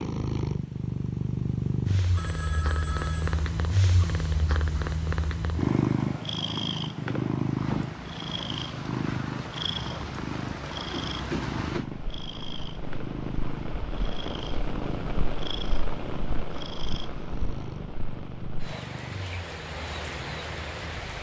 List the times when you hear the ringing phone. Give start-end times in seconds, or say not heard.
2.1-3.4.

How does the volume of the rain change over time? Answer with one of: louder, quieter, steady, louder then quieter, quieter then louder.
steady.